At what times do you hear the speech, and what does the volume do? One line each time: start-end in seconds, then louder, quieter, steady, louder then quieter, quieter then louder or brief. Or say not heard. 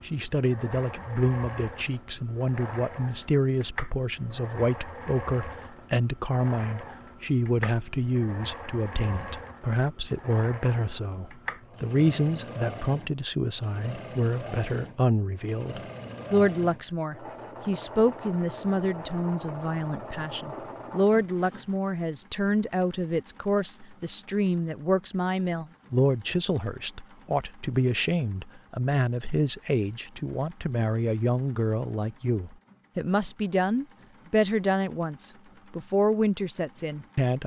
0.0-37.4 steady.